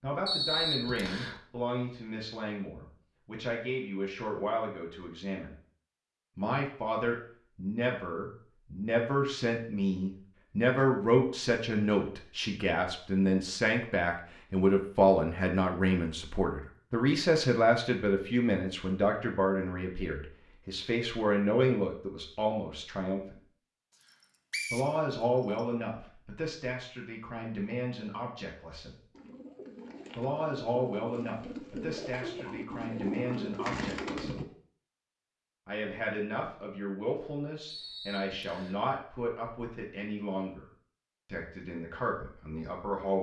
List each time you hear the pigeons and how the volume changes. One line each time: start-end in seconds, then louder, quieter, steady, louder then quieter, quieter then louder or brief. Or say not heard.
29.1-34.5 louder.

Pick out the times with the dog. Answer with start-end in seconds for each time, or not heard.
not heard.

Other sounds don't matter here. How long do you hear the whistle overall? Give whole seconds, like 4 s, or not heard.
4 s.